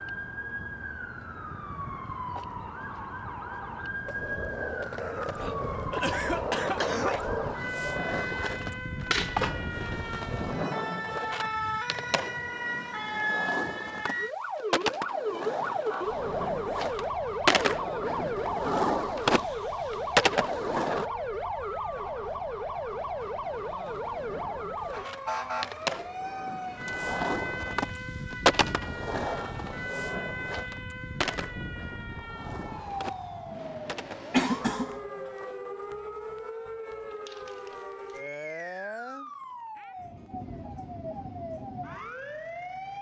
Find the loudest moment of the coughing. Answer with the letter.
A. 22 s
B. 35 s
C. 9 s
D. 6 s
B.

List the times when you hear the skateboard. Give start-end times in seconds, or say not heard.
4.0-21.1, 23.2-35.6.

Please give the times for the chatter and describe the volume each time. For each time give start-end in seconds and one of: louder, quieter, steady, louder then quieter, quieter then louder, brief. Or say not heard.
not heard.